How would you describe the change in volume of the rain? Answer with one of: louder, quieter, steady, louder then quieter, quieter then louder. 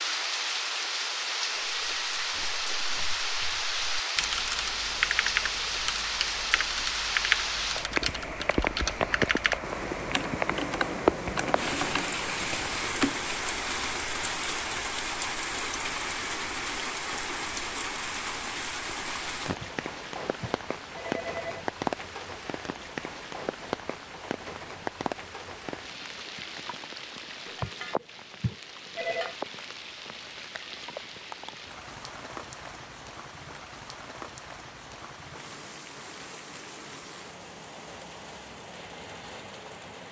quieter.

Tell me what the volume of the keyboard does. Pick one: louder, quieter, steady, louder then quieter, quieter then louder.
steady.